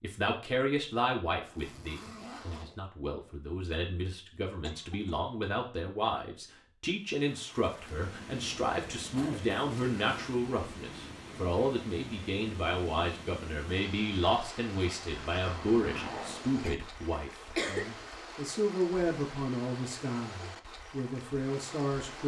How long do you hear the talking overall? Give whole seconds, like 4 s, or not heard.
22 s.